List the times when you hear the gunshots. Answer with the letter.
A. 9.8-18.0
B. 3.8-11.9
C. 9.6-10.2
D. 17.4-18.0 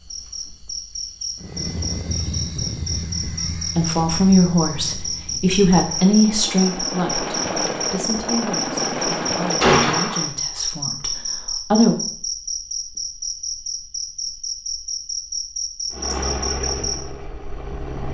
C.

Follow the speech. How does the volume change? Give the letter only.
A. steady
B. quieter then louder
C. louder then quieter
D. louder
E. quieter
E.